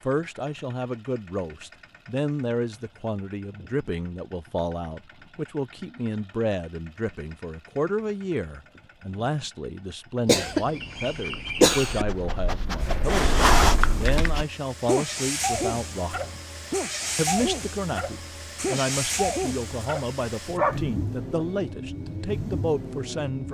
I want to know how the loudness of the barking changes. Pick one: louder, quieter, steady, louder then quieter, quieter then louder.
louder then quieter.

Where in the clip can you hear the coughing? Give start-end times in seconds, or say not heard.
10.2-12.1.